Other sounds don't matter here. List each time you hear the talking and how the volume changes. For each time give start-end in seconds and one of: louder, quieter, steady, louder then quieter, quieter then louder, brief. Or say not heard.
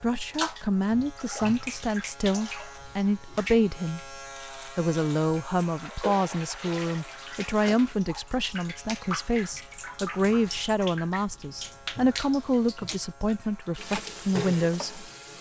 0.0-15.0 steady.